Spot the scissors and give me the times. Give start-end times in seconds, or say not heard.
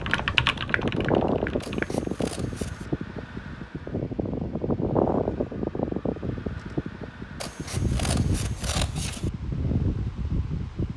1.6-2.9, 7.4-9.3.